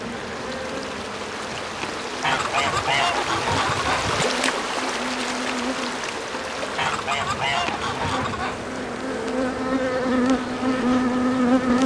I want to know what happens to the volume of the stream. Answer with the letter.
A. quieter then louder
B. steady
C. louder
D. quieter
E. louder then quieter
E.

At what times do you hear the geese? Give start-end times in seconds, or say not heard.
2.2-4.2, 6.8-8.7.